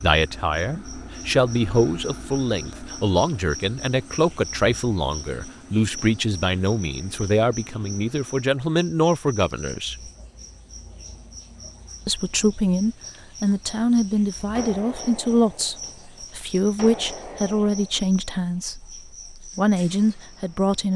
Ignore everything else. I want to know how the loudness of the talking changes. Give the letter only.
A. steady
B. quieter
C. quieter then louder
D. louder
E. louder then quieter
A.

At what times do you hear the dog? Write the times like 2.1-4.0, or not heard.
not heard.